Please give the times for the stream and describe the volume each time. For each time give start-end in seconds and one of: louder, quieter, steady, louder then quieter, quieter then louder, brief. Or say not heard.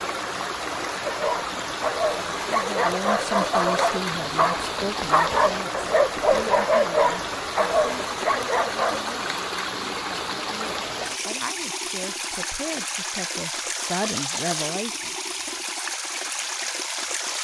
0.0-17.3 steady.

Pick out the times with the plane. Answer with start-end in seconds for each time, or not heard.
not heard.